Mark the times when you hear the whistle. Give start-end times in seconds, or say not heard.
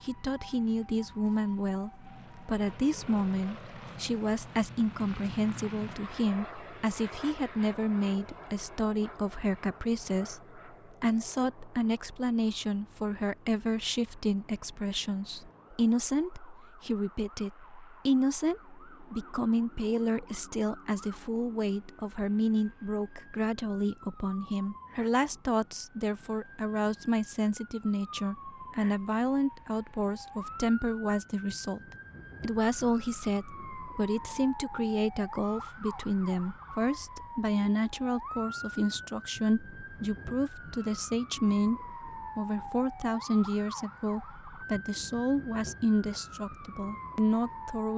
not heard.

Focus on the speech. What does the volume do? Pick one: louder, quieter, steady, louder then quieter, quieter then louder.
steady.